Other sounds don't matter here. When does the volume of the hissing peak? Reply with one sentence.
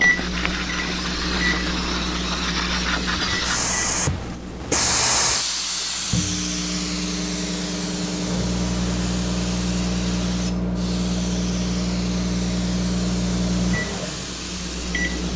The loudest moment of the hissing is at 5 seconds.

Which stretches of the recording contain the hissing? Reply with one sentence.
You can hear the hissing from 0.0 to 15.3 s.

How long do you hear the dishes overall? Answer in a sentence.
You can't hear the dishes here.